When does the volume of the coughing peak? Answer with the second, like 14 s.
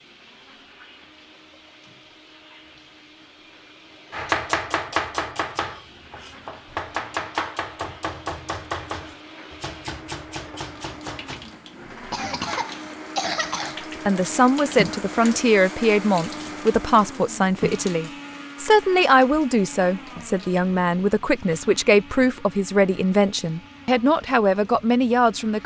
13 s.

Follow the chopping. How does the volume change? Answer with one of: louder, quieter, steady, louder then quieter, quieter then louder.
quieter.